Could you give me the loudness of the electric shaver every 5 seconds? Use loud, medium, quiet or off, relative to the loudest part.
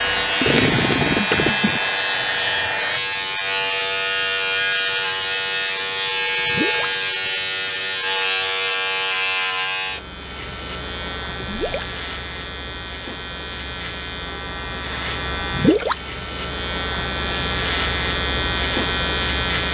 loud, loud, medium, loud.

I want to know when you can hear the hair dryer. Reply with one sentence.
You can hear the hair dryer from 0.0 to 3.0 s.